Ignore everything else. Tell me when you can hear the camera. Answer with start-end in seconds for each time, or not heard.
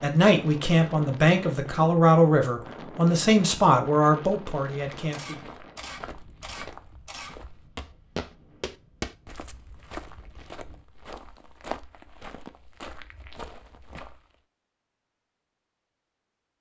5.1-7.3.